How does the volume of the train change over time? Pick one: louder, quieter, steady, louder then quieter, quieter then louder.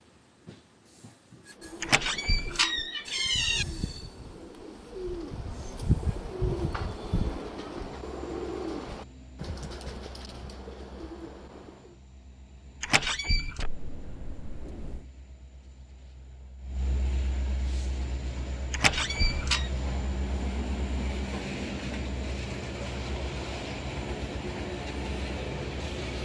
quieter then louder.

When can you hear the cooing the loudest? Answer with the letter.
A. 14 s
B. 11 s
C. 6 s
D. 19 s
C.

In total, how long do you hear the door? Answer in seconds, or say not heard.
4 s.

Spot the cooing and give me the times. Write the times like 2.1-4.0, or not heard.
1.5-12.0.